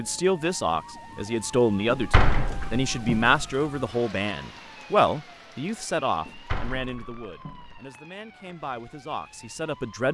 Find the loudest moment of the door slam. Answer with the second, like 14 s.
2 s.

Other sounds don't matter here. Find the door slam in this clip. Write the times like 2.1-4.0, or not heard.
1.9-3.4, 6.2-7.8.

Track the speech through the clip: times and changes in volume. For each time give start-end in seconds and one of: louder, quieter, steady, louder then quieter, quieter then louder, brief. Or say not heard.
0.0-10.0 quieter.